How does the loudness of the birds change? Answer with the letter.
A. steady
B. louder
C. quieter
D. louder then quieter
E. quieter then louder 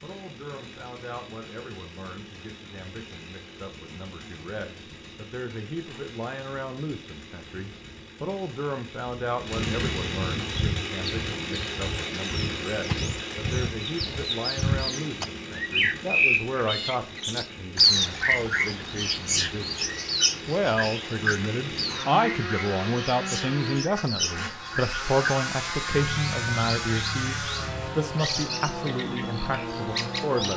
D.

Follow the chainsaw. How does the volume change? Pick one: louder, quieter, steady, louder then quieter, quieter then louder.
louder.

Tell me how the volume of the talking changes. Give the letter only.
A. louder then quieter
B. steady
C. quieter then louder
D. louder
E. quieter
D.